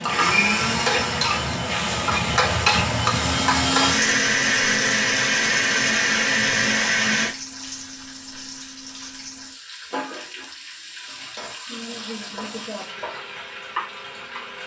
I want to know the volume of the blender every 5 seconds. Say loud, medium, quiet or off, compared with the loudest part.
loud, loud, off.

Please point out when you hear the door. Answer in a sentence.
You can't hear the door here.